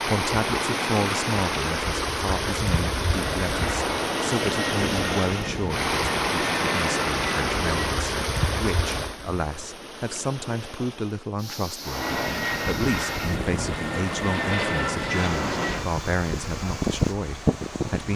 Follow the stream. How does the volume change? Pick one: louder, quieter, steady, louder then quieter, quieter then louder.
quieter.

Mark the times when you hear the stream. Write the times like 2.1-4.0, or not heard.
0.0-18.1.